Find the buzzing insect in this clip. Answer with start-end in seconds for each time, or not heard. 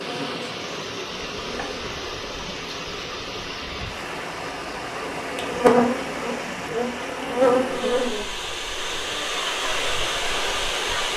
0.0-1.9, 5.0-8.2.